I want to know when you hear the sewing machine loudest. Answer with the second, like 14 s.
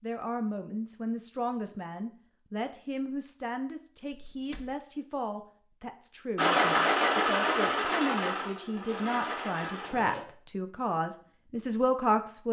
7 s.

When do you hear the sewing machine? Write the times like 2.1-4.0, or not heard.
6.3-10.2.